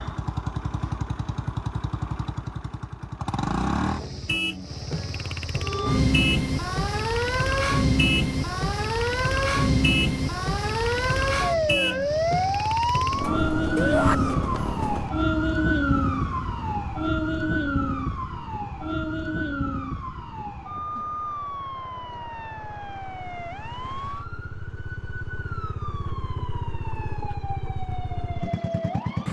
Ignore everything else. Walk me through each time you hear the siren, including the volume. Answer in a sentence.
You can hear the siren from 5.6 to 29.2 s, getting quieter.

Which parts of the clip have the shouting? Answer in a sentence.
The shouting can be heard from 13.8 to 14.2 s.